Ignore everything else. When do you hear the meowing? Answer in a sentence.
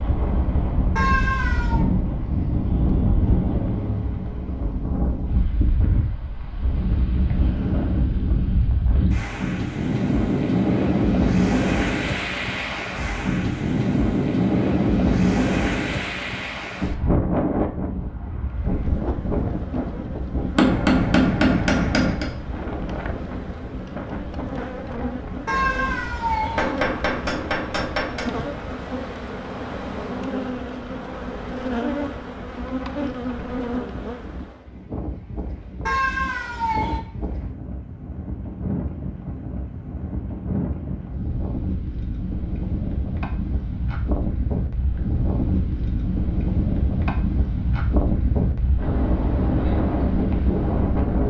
You can hear the meowing from 0.9 to 1.9 s, from 25.4 to 26.8 s and from 35.9 to 37.0 s.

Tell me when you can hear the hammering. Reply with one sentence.
The hammering can be heard from 20.6 to 22.3 s and from 26.6 to 28.3 s.